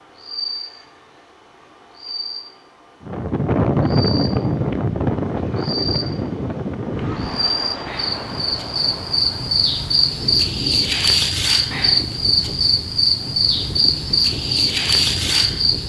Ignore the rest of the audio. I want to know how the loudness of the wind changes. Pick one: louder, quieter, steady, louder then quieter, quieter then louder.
quieter.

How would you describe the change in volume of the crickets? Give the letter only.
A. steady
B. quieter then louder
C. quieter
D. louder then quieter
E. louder
E.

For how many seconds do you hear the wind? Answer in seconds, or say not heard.
13 s.